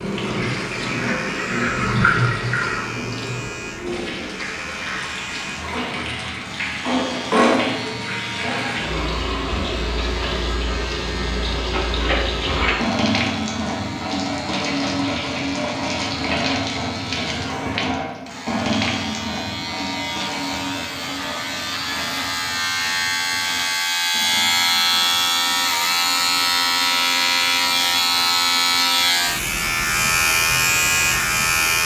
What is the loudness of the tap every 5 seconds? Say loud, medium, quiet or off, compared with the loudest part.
loud, loud, loud, loud, medium, quiet, off.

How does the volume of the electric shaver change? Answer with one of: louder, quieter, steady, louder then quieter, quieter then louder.
louder.